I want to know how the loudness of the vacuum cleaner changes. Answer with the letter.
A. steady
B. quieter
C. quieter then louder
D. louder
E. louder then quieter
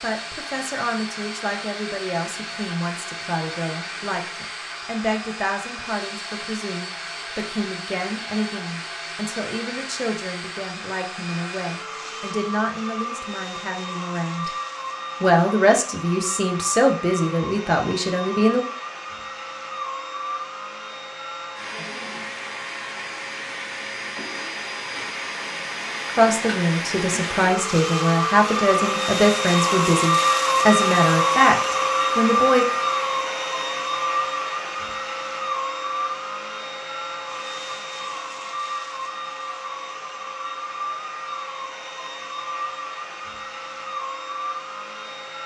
E.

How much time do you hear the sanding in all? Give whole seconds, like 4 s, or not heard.
not heard.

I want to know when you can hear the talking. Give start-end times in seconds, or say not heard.
0.0-14.5, 15.2-18.6, 26.1-32.6.